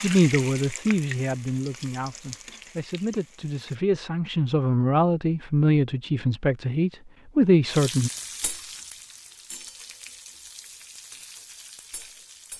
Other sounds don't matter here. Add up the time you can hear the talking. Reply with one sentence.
You can hear the talking for 8 seconds altogether.